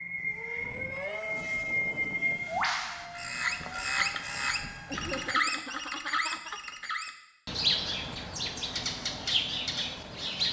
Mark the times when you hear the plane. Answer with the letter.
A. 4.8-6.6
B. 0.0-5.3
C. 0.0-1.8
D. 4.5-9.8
B.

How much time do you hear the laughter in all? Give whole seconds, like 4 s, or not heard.
2 s.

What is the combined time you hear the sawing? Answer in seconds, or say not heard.
not heard.